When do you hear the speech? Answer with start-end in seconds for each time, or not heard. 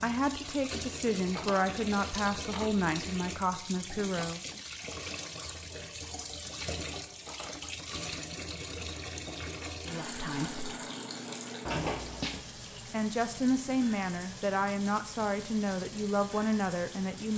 0.0-4.6, 9.8-10.8, 12.9-17.3.